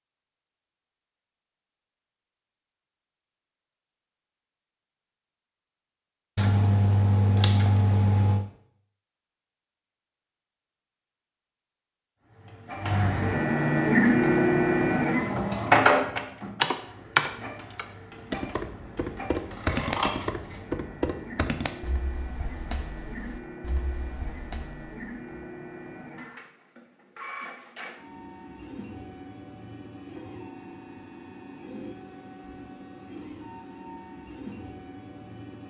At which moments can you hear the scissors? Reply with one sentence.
You can hear the scissors from 6.3 to 8.4 s and from 19.5 to 20.6 s.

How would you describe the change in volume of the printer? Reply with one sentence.
The loudness of the printer goes down.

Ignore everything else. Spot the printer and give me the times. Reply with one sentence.
The printer can be heard from 12.2 to 35.6 s.